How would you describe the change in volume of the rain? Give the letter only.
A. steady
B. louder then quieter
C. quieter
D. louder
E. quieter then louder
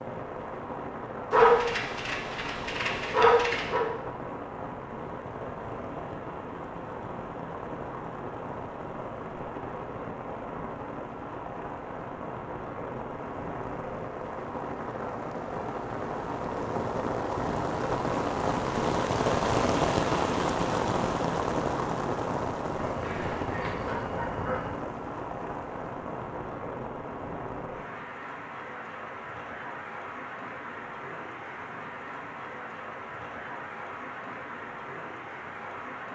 B.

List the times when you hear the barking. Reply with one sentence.
The barking can be heard from 1.3 to 3.9 s and from 22.7 to 24.8 s.